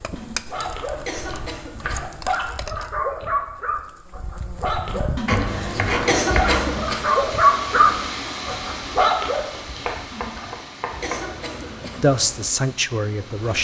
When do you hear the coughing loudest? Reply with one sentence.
The volume of the coughing peaks at 6 seconds.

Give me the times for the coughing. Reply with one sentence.
The coughing can be heard from 0.1 to 2.1 s, from 5.2 to 7.2 s and from 10.1 to 12.1 s.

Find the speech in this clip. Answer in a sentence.
The speech can be heard from 12.0 to 13.5 s.